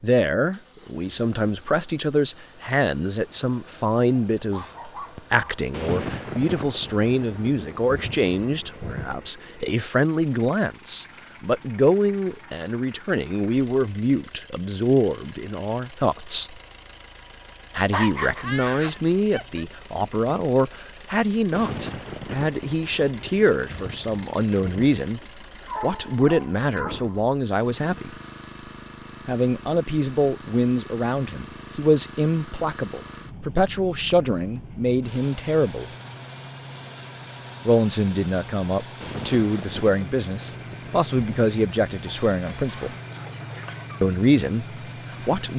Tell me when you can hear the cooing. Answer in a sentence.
You can't hear the cooing here.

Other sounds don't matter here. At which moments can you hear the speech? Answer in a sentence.
You can hear the speech from 0.0 to 16.6 s, from 17.8 to 25.2 s, from 25.8 to 28.1 s, from 29.2 to 35.9 s, from 37.6 to 43.0 s and from 44.0 to 45.5 s.